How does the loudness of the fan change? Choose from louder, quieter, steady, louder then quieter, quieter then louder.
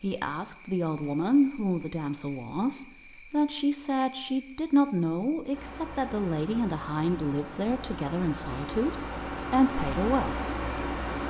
louder.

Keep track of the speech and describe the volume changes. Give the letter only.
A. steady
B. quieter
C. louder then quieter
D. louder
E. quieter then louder
A.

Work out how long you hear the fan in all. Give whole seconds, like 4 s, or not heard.
6 s.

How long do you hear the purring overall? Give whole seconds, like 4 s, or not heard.
not heard.